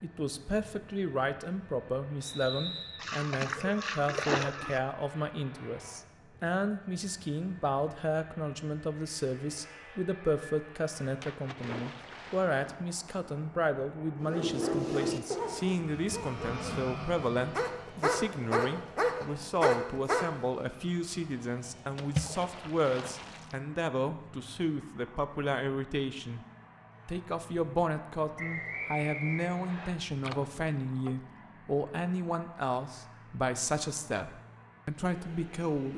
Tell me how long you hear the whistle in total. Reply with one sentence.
The whistle can be heard for 2 seconds in total.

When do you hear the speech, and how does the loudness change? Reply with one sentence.
The speech can be heard from 0.0 to 26.4 s, at a steady volume; and from 27.1 to 35.9 s, at a steady volume.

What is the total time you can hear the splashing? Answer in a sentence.
You can hear the splashing for 6 seconds altogether.